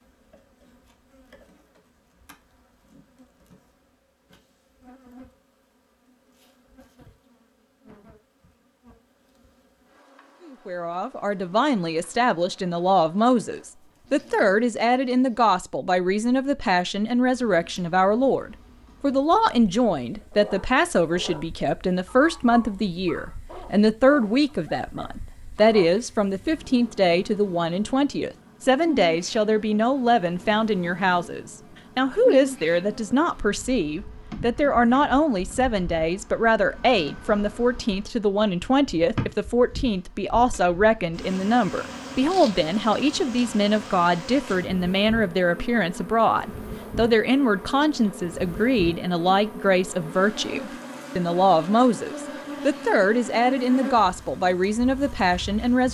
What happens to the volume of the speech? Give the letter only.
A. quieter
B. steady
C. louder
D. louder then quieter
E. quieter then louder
B.